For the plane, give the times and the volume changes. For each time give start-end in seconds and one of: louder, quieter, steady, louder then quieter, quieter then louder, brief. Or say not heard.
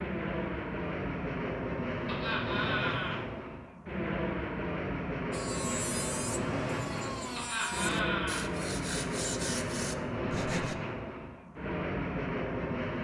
0.0-12.9 steady.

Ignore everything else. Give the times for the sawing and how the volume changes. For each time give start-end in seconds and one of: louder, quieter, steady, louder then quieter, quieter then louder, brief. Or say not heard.
5.3-10.8 steady.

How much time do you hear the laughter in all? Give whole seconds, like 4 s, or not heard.
2 s.